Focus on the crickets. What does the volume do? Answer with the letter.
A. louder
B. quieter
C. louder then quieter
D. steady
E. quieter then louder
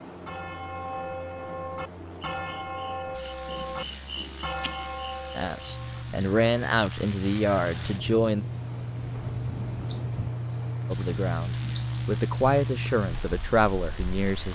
A.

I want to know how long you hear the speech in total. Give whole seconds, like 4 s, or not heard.
7 s.